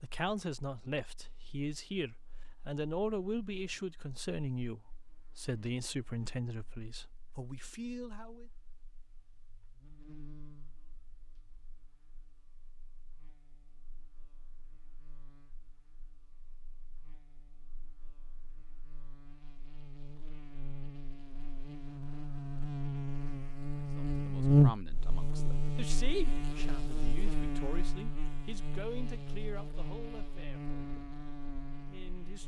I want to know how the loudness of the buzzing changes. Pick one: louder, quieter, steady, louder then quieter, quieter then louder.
louder then quieter.